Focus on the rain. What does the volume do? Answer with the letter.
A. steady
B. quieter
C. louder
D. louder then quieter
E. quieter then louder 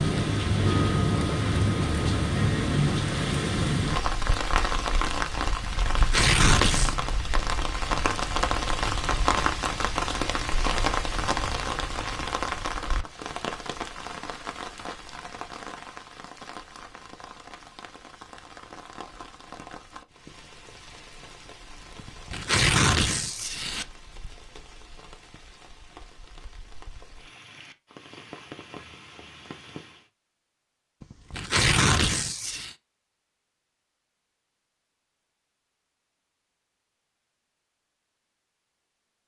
B.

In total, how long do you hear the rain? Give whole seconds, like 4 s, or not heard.
30 s.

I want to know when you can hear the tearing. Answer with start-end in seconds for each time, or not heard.
5.6-7.0, 21.9-23.9, 31.0-32.8.